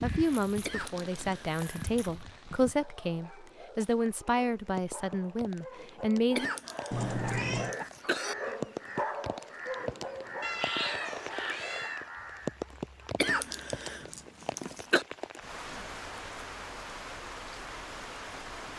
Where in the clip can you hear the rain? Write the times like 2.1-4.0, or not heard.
0.0-18.7.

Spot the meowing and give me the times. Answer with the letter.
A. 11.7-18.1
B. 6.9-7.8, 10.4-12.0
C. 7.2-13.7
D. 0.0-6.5
B.